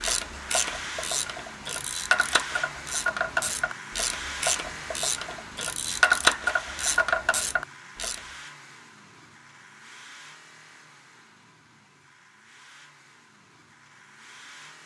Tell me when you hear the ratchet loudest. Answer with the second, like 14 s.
6 s.